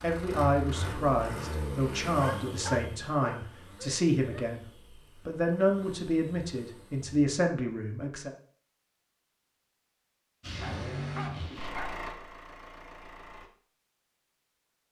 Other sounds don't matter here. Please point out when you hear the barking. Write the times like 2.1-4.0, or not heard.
2.2-4.5, 10.6-12.0.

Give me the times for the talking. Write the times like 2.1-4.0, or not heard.
0.0-4.7, 5.2-8.3.